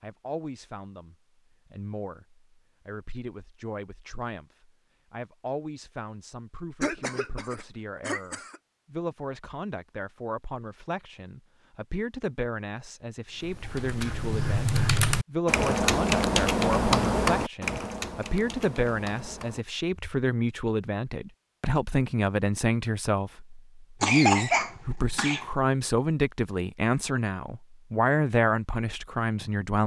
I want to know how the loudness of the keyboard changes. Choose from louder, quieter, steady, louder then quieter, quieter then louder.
louder then quieter.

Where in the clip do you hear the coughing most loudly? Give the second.
24 s.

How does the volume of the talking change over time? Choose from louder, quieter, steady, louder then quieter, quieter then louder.
louder.